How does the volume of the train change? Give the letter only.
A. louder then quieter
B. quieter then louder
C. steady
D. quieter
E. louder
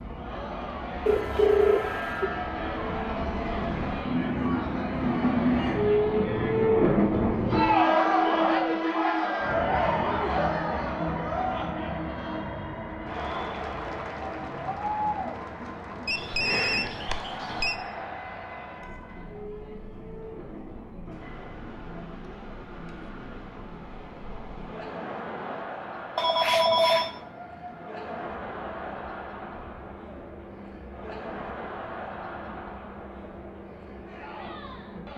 D.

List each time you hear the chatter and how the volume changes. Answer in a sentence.
You can hear the chatter from 0.0 to 35.1 s, getting louder then quieter.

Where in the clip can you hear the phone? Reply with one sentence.
You can hear the phone from 1.1 to 2.3 s, from 16.1 to 17.8 s and from 26.1 to 27.1 s.